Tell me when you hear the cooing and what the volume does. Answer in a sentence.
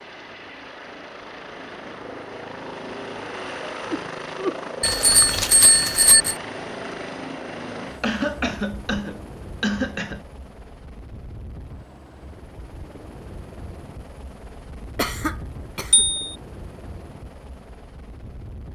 You can't hear the cooing here.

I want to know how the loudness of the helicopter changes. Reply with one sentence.
The loudness of the helicopter goes down.